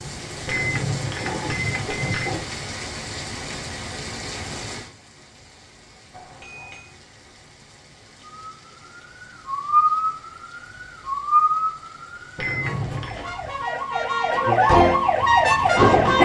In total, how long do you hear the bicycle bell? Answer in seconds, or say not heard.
4 s.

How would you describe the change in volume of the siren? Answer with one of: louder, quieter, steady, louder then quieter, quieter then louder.
quieter then louder.